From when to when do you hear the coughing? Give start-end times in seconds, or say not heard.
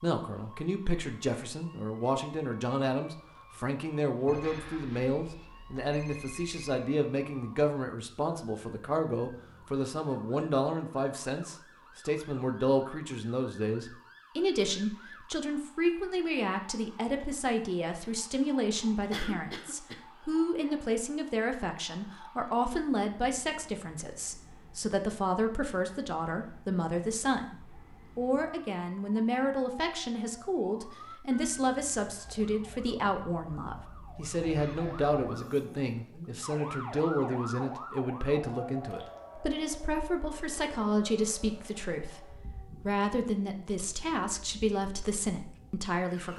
19.1-20.0.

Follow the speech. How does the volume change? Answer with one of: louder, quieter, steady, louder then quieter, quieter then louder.
steady.